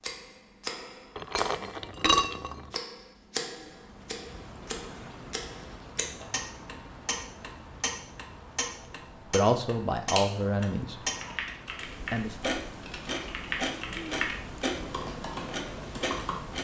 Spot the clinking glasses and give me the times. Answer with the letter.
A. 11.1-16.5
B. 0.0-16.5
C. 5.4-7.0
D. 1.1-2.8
D.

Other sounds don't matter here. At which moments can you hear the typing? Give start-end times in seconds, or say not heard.
11.1-16.5.